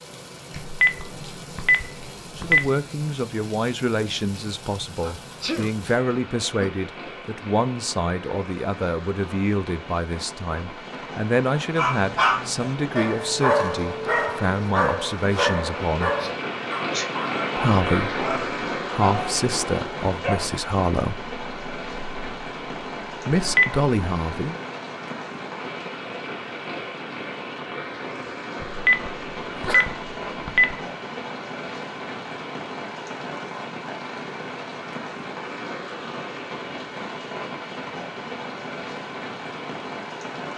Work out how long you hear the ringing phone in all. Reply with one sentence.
The ringing phone can be heard for 5 seconds in total.